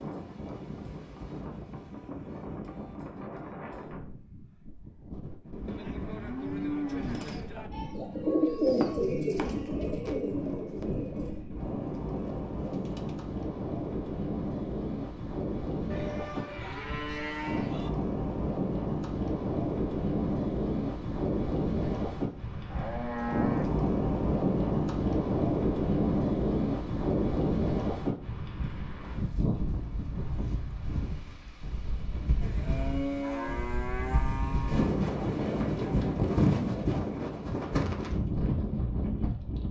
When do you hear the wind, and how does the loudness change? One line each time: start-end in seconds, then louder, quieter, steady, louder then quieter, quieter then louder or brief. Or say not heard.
0.0-39.6 louder.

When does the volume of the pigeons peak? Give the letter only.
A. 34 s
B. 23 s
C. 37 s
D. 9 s
D.